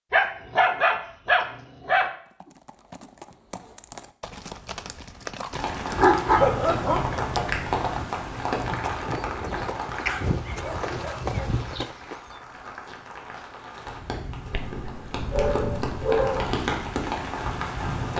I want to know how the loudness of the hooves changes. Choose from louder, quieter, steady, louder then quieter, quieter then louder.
louder.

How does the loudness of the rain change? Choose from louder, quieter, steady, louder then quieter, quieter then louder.
quieter then louder.